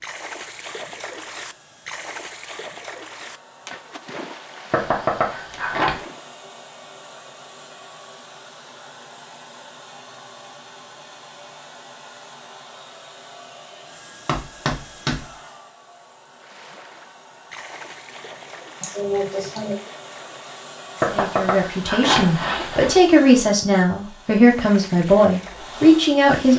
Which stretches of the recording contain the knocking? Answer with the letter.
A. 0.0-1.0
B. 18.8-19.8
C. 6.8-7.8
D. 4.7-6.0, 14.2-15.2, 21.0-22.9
D.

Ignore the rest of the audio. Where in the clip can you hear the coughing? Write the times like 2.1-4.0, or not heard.
18.8-19.8.